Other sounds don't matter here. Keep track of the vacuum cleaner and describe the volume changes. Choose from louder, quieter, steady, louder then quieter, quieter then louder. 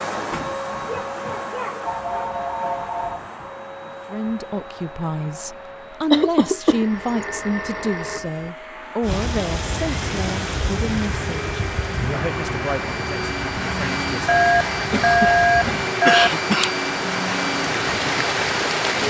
quieter then louder.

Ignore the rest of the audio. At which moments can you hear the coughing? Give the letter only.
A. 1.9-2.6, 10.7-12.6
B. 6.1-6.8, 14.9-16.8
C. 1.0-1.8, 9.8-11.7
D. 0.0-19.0
B.